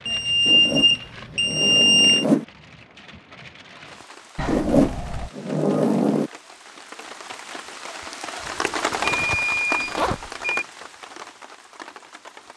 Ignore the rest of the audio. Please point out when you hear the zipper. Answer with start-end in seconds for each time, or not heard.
0.5-2.5, 4.5-6.3, 8.4-10.3.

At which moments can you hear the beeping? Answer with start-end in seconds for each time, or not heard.
0.1-2.2, 4.3-5.3, 9.2-10.7.